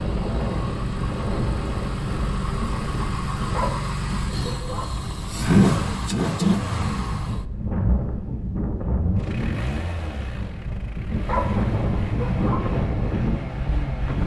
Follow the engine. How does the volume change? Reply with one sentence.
The volume of the engine goes up, then down.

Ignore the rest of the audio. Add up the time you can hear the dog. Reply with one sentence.
The dog can be heard for 3 seconds in total.